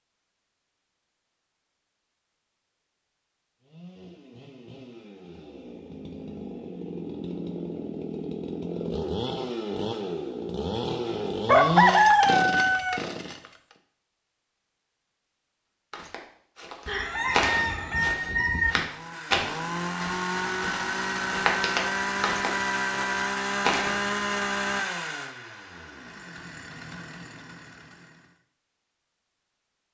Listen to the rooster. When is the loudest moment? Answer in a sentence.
The volume of the rooster peaks at 12 seconds.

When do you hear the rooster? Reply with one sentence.
You can hear the rooster from 11.4 to 13.0 s and from 16.9 to 18.8 s.